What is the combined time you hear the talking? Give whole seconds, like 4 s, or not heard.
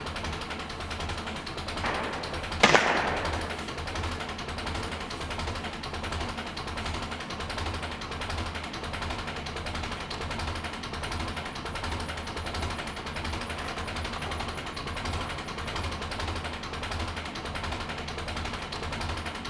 not heard.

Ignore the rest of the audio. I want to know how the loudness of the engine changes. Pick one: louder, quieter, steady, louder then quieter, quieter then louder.
steady.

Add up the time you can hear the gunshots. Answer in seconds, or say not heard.
2 s.